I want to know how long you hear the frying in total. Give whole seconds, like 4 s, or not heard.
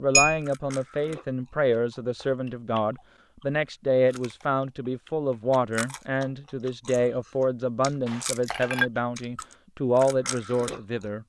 not heard.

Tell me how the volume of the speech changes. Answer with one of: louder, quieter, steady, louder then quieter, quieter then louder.
steady.